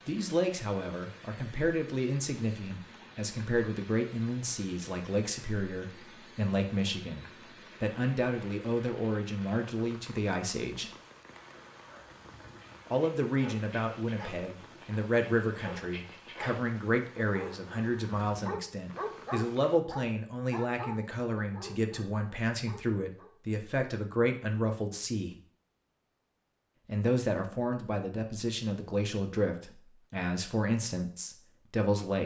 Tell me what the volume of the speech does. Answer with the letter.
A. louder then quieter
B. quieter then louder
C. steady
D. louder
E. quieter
C.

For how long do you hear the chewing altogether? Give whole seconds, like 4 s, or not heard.
not heard.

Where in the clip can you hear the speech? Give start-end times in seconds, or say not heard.
0.1-10.9, 12.8-25.4, 26.9-32.2.